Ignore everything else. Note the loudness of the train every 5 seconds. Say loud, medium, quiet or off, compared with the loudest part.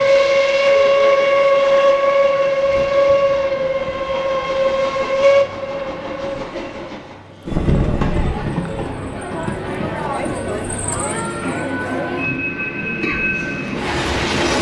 loud, medium, medium.